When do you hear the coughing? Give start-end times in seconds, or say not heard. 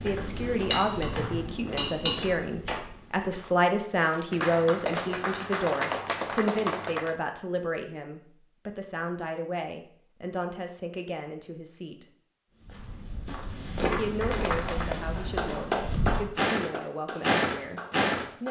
not heard.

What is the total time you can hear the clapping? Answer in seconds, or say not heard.
7 s.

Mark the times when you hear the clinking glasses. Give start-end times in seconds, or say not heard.
0.7-2.2.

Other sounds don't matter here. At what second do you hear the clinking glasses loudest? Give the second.
2 s.